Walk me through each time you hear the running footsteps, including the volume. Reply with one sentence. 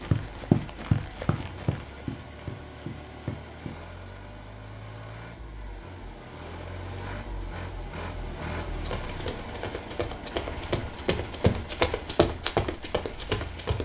The running footsteps can be heard from 0.0 to 4.2 s, getting quieter; and from 8.7 to 13.8 s, getting louder.